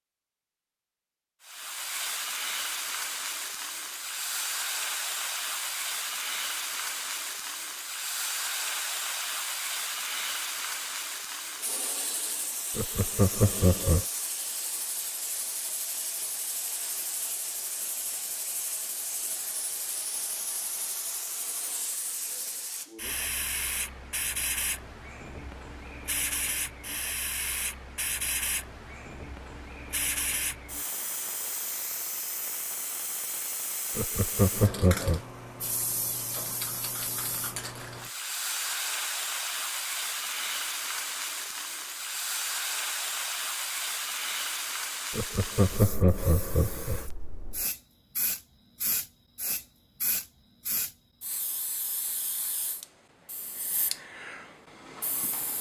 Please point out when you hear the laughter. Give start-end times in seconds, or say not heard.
12.8-14.1, 34.0-35.2, 45.1-47.0.